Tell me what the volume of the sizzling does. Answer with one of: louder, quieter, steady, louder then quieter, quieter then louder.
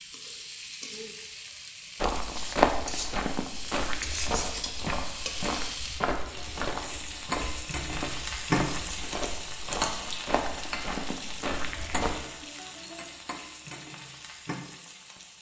louder then quieter.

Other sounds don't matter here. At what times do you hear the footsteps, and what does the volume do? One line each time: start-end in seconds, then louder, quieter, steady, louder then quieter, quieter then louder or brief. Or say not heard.
2.0-12.2 quieter.